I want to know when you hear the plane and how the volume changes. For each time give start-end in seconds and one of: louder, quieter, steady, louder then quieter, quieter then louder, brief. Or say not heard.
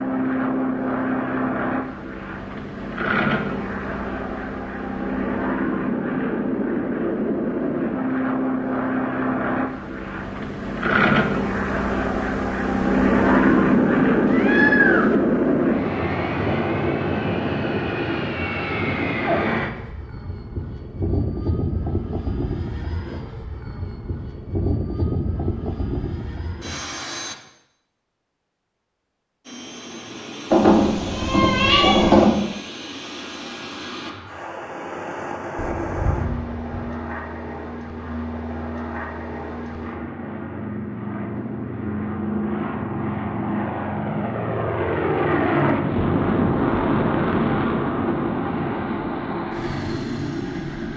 0.0-27.4 louder then quieter
29.4-50.9 louder.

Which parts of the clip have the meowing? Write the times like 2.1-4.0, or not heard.
14.2-15.2, 30.5-32.3, 35.8-37.0.